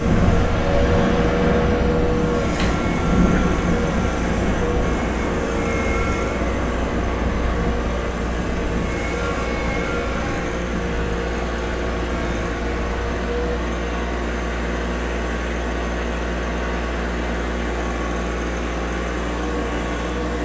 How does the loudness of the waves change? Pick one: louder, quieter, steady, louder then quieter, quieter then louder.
quieter.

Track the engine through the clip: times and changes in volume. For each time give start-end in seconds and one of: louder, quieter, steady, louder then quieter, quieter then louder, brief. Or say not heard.
0.0-20.4 steady.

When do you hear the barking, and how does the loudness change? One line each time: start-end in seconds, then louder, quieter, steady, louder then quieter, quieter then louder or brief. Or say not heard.
not heard.